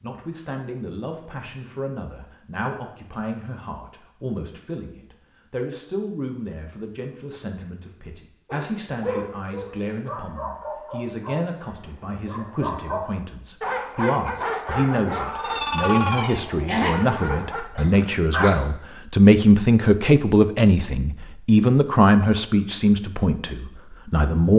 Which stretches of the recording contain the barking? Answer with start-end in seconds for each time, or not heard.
8.4-18.5.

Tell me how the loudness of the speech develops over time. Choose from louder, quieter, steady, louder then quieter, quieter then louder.
louder.